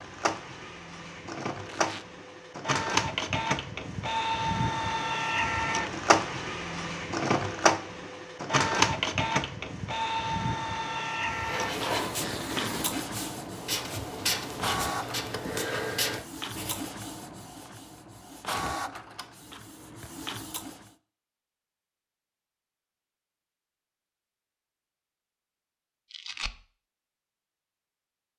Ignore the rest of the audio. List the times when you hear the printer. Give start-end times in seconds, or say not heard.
0.0-20.9.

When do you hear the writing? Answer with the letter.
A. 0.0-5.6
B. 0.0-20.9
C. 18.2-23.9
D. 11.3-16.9
D.